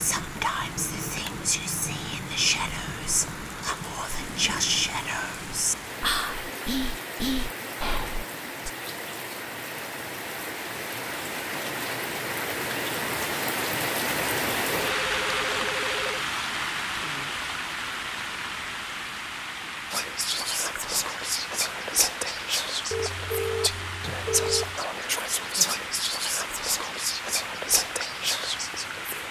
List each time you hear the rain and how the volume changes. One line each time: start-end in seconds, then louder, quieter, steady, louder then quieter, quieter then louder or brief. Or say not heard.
0.0-29.2 louder then quieter.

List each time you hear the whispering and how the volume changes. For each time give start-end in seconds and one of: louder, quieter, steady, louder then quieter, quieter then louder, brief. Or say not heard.
0.0-8.7 steady
19.9-29.2 steady.